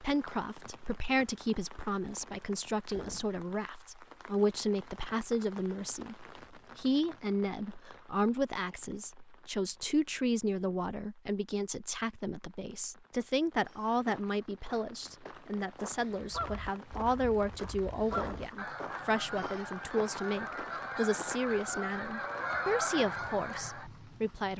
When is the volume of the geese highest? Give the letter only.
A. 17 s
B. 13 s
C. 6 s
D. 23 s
D.